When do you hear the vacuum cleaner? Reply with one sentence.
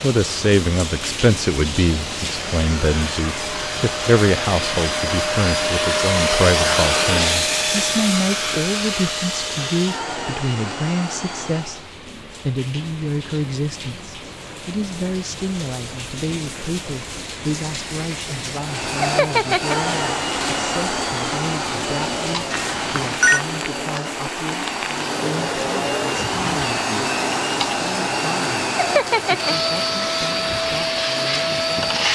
You can hear the vacuum cleaner from 0.0 to 11.9 s and from 18.6 to 32.0 s.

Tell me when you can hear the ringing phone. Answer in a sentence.
The ringing phone can be heard from 22.5 to 23.4 s.